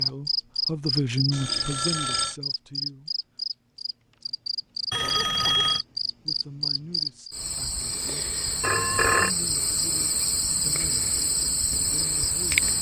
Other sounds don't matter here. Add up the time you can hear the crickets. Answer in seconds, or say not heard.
13 s.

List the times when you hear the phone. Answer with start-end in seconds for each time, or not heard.
1.3-2.4, 4.9-5.8, 8.6-9.3.